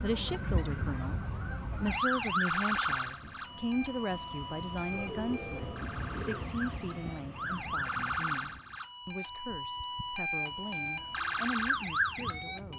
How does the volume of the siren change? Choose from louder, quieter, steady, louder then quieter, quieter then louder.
quieter then louder.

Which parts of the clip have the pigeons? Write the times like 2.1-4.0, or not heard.
4.9-6.5.